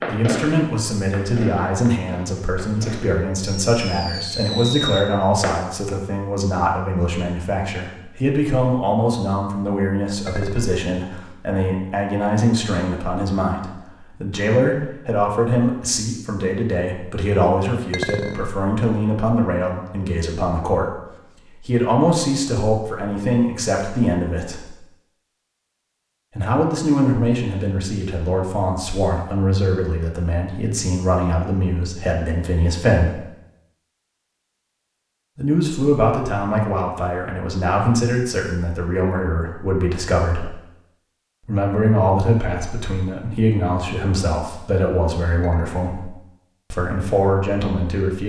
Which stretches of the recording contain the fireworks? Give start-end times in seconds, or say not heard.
0.0-5.6.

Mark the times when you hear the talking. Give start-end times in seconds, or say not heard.
0.1-21.0, 21.6-24.7, 26.4-33.2, 35.4-40.5, 41.5-46.1, 46.7-48.2.